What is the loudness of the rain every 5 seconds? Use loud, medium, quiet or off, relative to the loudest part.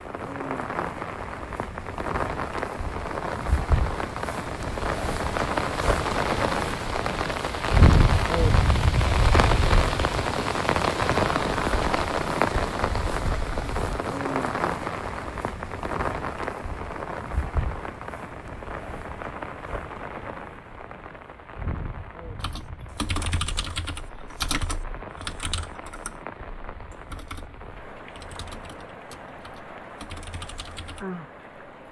medium, loud, loud, medium, quiet, quiet, quiet.